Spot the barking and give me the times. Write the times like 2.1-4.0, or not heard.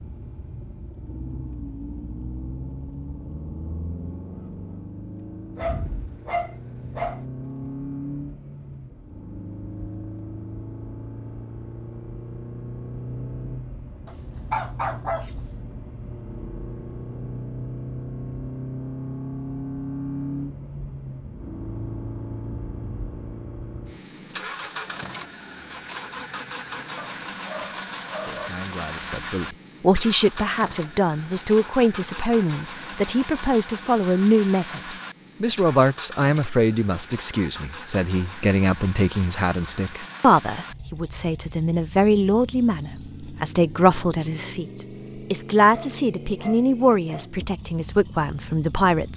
5.5-7.2, 14.1-15.4, 26.9-28.5, 45.6-47.3.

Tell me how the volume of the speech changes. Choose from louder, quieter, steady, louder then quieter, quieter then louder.
steady.